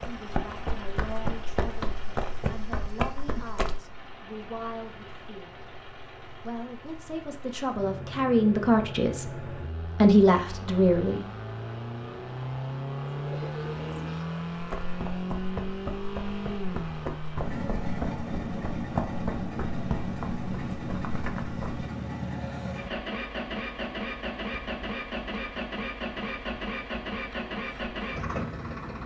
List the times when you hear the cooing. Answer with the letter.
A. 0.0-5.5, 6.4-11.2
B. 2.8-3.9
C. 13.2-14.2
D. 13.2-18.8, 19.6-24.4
C.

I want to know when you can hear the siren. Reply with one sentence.
You can't hear the siren here.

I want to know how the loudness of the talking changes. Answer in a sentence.
The loudness of the talking goes up.